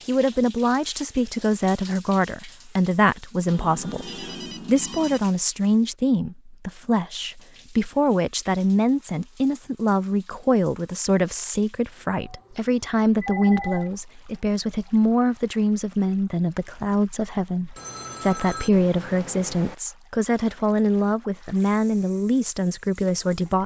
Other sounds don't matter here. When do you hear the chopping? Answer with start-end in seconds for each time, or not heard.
not heard.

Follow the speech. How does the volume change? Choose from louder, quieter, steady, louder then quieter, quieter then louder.
steady.